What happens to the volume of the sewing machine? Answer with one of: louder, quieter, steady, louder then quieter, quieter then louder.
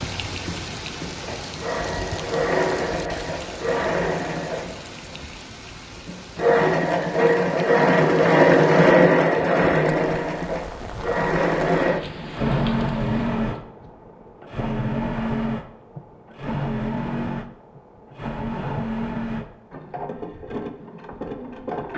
louder then quieter.